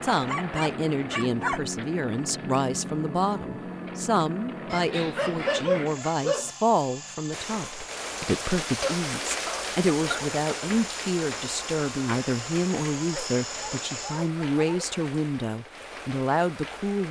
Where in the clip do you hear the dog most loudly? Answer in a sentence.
The loudest moment of the dog is at 6 seconds.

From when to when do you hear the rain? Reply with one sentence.
The rain can be heard from 7.3 to 17.0 s.